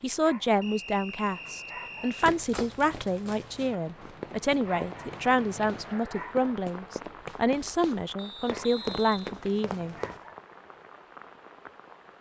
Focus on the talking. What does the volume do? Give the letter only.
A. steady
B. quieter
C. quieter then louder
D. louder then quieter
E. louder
A.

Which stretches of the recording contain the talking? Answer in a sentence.
You can hear the talking from 0.0 to 9.9 s.